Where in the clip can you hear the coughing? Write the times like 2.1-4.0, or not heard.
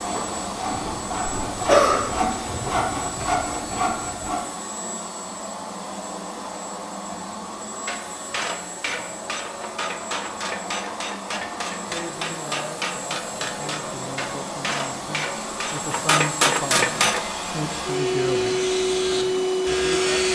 1.3-2.0.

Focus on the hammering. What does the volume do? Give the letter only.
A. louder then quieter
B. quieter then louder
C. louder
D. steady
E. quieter
C.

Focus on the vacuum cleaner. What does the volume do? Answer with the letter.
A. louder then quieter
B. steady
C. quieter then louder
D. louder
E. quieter
D.